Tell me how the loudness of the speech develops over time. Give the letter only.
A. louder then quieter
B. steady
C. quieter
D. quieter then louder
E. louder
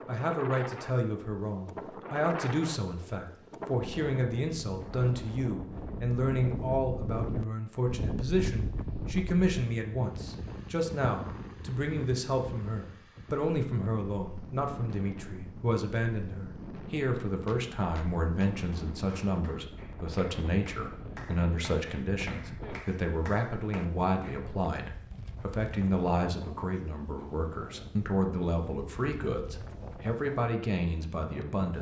B.